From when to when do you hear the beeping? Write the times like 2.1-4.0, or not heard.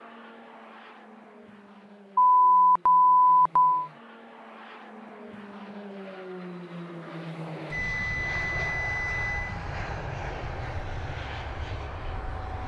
2.1-3.8, 7.7-9.6.